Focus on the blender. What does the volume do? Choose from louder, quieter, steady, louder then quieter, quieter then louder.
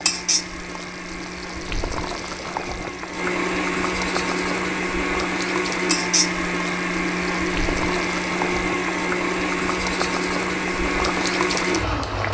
louder.